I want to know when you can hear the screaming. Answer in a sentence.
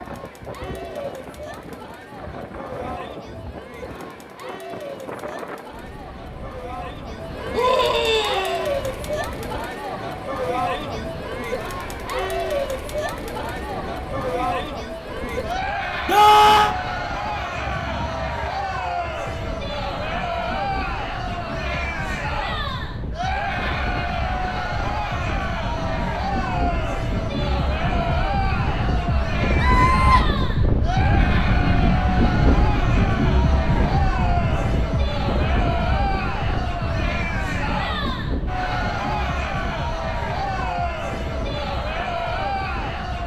The screaming can be heard from 7.5 to 8.7 s, from 16.1 to 16.8 s and from 29.6 to 30.2 s.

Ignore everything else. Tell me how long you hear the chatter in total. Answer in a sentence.
The chatter can be heard for 43 seconds in total.